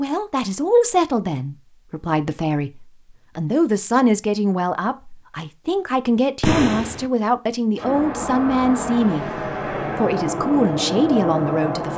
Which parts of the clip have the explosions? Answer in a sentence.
You can hear the explosions from 6.4 to 7.0 s.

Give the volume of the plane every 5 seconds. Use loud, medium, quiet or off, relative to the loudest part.
off, loud, loud.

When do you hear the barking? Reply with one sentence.
You can't hear the barking here.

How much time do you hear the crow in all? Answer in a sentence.
You can't hear the crow here.